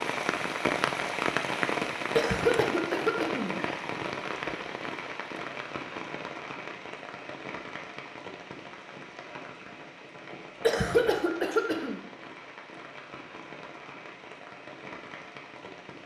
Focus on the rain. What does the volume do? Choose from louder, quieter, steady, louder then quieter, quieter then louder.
quieter.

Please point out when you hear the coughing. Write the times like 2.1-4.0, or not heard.
2.1-3.6, 10.6-12.0.